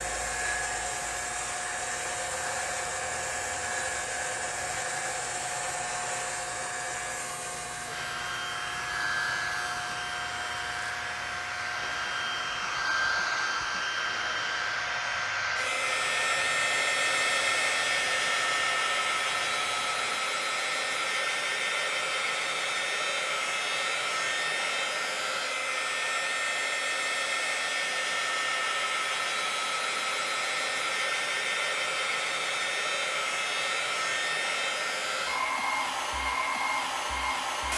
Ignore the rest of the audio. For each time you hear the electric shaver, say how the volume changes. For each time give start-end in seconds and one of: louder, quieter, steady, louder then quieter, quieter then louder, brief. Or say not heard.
0.0-20.2 quieter.